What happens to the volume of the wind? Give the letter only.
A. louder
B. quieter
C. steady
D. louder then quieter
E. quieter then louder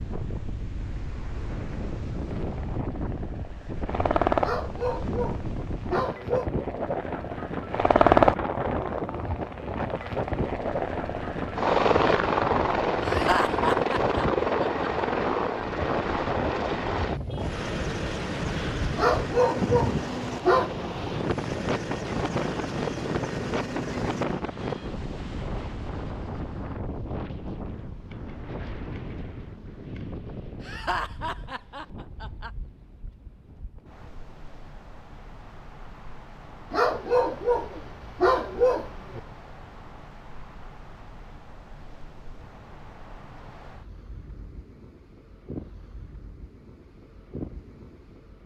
B.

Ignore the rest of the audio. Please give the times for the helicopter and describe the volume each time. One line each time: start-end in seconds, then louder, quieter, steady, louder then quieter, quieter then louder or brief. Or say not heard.
2.3-24.4 louder then quieter.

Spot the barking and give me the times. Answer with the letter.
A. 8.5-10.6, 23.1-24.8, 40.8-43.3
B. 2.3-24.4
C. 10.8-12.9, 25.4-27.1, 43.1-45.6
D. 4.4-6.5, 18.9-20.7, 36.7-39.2
D.